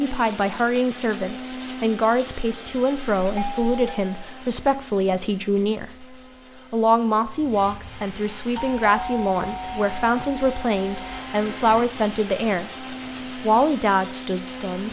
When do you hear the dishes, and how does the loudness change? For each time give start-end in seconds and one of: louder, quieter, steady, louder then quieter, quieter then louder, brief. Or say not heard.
not heard.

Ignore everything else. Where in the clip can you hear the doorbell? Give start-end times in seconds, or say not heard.
3.2-4.3, 8.6-11.2.